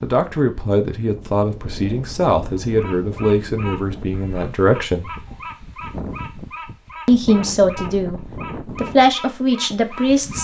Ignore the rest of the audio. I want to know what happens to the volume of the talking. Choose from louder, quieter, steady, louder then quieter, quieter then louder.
steady.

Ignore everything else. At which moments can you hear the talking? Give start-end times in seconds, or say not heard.
0.0-5.2, 7.0-10.4.